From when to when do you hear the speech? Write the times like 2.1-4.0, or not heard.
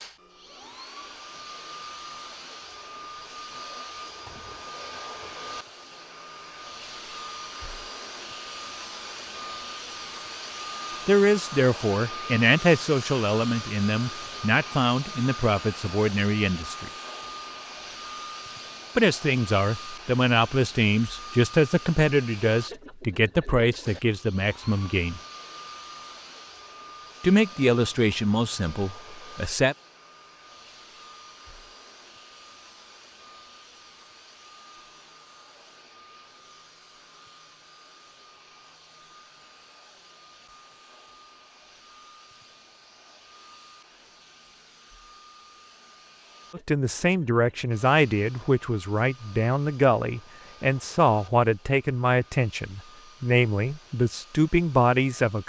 11.1-16.9, 18.9-25.2, 27.2-29.8, 46.5-55.4.